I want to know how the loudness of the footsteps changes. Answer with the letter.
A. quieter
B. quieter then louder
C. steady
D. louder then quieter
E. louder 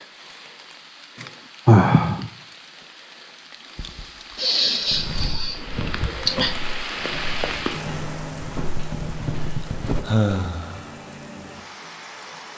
B.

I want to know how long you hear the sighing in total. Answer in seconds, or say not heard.
4 s.